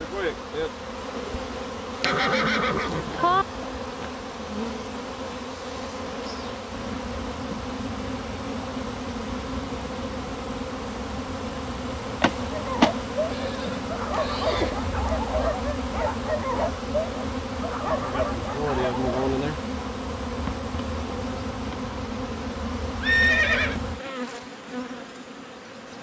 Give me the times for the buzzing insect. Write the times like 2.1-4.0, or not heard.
0.0-25.9.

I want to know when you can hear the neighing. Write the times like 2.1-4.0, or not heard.
2.0-3.5, 13.3-14.8, 23.0-23.8.